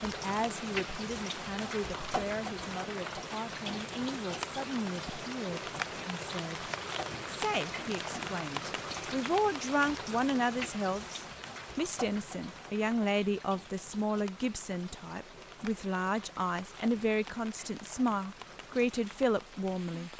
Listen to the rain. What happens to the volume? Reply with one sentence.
The volume of the rain goes down.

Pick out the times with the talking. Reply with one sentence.
You can hear the talking from 0.0 to 6.7 s and from 7.3 to 20.1 s.